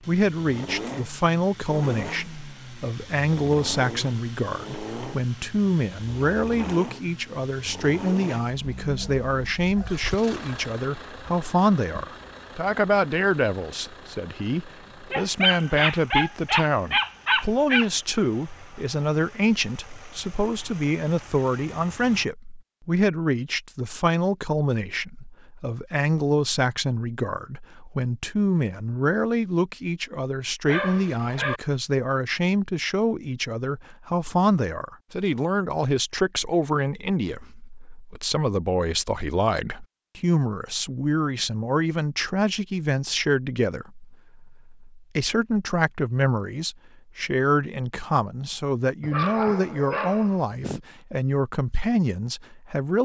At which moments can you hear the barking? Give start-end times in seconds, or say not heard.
8.8-10.2, 15.1-17.9, 30.6-31.6, 49.0-50.8.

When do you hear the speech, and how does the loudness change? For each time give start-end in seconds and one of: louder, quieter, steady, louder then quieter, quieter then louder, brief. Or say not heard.
0.1-53.0 steady.